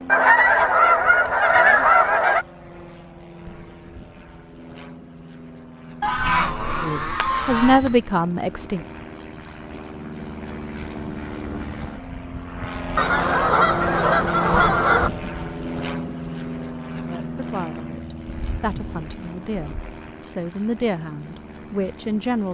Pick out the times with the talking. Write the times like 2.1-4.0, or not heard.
6.8-8.8, 17.1-22.4.